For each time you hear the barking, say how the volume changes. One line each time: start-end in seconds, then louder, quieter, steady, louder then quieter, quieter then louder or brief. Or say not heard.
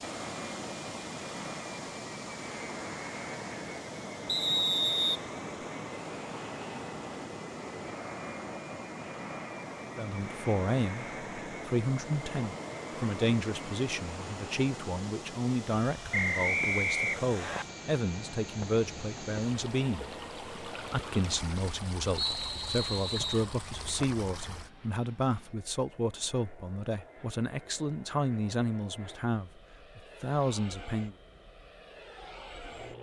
not heard.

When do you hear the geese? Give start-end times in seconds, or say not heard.
not heard.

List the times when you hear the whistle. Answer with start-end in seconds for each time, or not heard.
4.2-5.2, 16.1-17.6, 22.1-23.4.